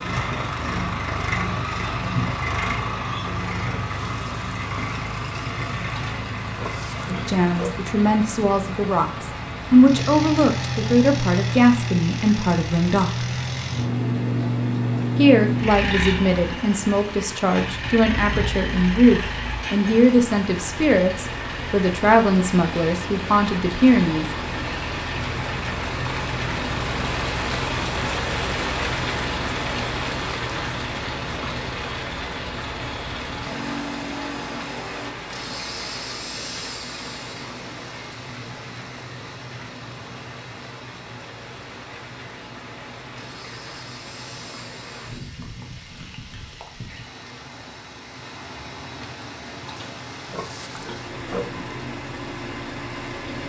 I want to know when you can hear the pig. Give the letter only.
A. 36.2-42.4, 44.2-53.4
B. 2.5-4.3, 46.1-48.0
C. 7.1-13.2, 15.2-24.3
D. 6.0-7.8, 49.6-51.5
D.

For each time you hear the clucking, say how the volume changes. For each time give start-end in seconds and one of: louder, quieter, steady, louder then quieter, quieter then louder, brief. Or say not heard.
not heard.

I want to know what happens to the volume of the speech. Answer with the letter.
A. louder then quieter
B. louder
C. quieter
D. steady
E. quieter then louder
D.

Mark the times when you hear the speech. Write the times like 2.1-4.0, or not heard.
7.1-13.2, 15.2-24.3.